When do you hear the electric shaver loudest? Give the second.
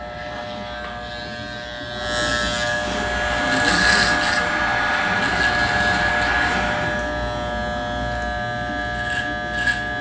4 s.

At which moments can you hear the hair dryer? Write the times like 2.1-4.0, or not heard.
3.0-7.1.